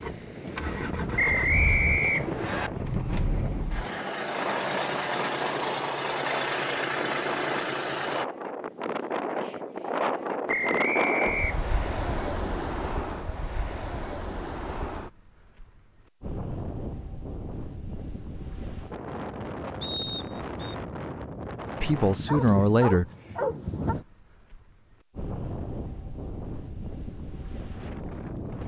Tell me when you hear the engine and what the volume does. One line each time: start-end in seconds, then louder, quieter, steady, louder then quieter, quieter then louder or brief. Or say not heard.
0.0-8.2 louder.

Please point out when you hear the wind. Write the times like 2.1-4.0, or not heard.
0.0-28.6.